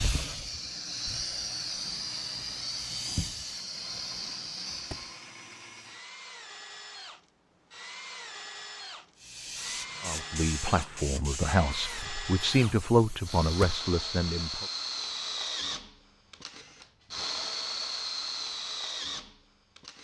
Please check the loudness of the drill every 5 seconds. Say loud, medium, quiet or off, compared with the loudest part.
quiet, medium, loud, loud.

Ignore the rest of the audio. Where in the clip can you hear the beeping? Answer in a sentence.
The beeping can't be heard in this clip.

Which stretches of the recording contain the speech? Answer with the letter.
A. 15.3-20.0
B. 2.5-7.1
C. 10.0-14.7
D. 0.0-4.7
C.